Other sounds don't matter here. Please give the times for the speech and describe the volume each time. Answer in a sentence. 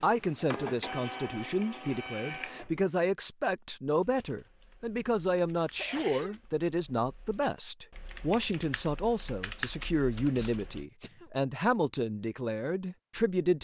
You can hear the speech from 0.0 to 13.5 s, at a steady volume.